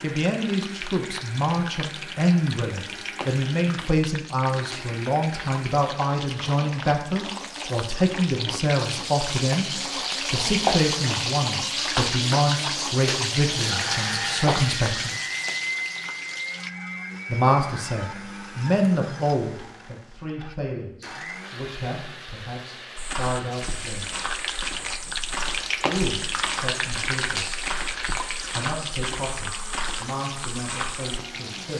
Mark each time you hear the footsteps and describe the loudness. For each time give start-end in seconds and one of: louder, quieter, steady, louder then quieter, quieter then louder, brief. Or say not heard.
22.9-31.2 steady.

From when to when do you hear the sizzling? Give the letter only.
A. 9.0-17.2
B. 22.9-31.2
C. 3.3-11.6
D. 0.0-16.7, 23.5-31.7
D.